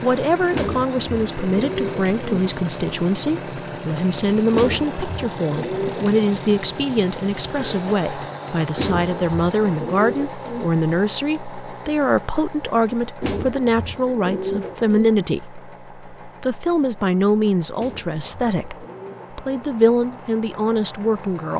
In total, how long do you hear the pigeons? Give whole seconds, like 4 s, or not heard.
9 s.